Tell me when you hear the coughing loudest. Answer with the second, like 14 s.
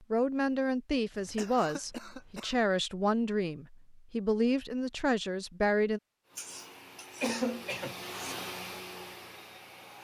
7 s.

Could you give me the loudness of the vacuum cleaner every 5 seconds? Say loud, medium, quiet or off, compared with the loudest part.
off, loud.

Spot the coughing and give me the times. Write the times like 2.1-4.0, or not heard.
1.1-2.6, 6.3-8.3.